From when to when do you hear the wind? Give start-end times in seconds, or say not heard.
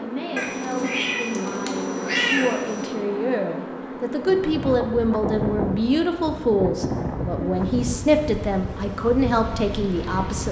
4.2-10.4.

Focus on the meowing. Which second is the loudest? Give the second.
2 s.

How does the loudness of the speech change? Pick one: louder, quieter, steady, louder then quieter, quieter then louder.
louder.